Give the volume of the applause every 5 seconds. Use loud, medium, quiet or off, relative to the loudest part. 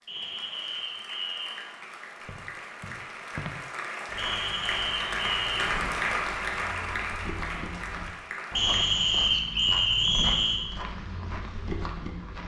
medium, loud, off.